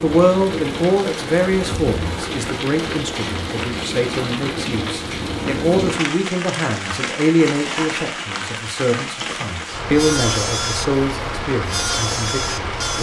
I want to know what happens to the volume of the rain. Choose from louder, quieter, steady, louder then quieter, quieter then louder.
steady.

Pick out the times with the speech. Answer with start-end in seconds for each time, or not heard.
0.0-12.9.